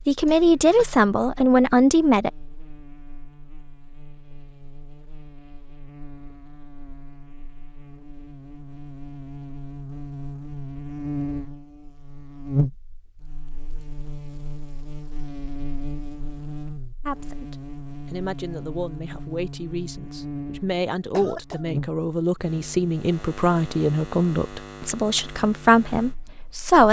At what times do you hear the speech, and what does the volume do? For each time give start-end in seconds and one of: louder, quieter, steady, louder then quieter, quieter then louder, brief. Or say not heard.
0.1-2.3 brief
17.1-26.8 louder.